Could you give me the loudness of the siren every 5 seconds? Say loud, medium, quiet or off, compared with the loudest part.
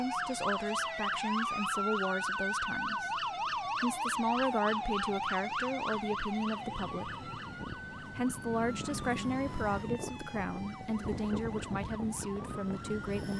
loud, medium, quiet.